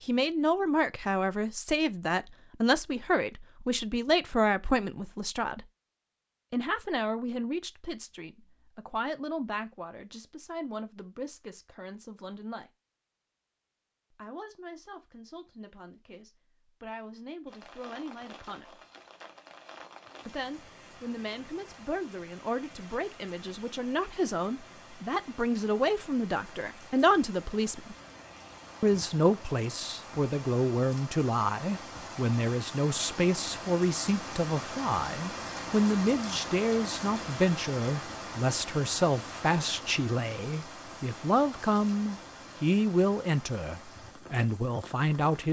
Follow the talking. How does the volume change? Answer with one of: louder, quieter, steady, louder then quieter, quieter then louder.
quieter then louder.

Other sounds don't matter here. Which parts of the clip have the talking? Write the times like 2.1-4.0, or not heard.
0.0-5.7, 6.5-12.7, 14.1-18.8, 20.2-27.9, 28.8-45.4.